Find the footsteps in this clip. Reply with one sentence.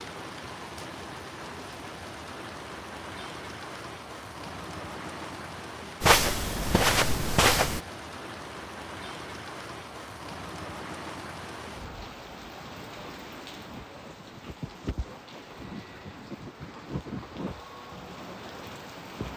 The footsteps can be heard from 6.0 to 7.8 s.